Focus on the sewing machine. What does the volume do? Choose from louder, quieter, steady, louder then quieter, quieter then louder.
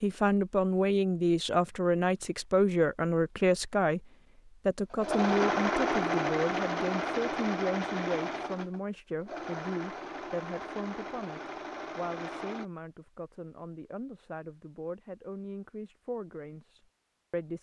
quieter.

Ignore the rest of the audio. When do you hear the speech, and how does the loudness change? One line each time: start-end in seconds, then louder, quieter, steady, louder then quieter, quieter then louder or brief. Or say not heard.
0.0-4.0 steady
4.7-17.5 quieter.